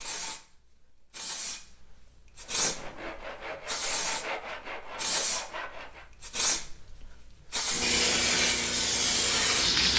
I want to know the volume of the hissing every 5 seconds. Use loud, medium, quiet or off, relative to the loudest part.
medium, loud.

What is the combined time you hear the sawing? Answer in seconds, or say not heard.
4 s.